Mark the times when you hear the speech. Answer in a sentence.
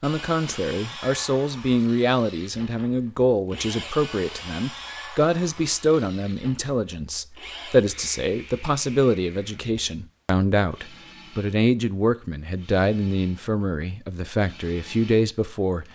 The speech can be heard from 0.0 to 15.8 s.